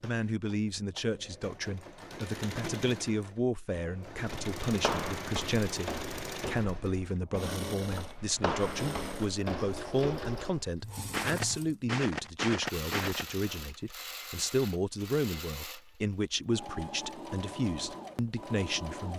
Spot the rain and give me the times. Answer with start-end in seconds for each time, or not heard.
not heard.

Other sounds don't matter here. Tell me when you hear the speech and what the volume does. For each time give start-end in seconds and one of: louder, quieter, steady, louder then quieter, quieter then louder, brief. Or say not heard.
0.0-19.1 steady.